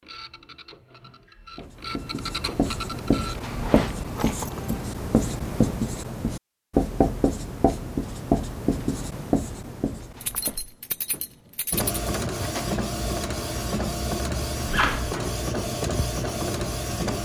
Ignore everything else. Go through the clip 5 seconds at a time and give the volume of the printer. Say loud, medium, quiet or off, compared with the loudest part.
medium, off, loud, loud.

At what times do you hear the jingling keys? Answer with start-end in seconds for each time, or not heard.
4.2-4.8, 10.2-12.1.